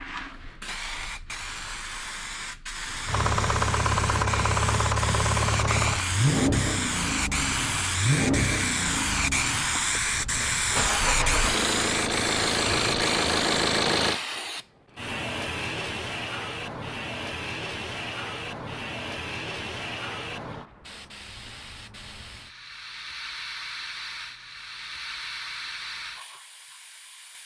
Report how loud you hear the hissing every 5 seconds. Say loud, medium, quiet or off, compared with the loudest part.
medium, loud, loud, medium, medium, medium.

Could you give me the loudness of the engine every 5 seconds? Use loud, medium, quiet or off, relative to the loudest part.
loud, loud, loud, off, off, off.